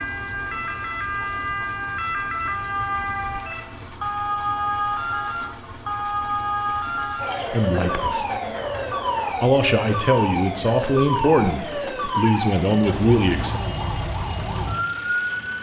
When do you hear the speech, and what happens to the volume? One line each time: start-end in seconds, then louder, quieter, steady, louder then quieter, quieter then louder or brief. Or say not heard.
7.5-8.2 brief
9.4-13.6 steady.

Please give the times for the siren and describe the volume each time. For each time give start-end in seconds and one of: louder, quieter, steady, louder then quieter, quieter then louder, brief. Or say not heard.
0.0-15.5 steady.